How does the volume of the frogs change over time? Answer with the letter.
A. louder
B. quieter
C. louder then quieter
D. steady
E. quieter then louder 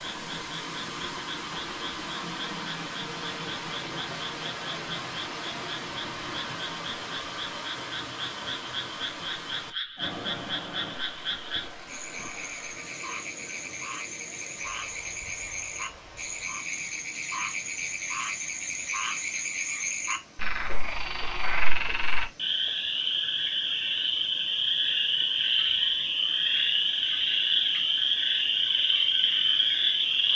A.